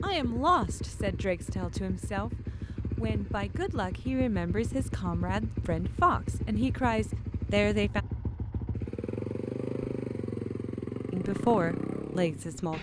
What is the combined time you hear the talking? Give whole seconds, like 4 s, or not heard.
10 s.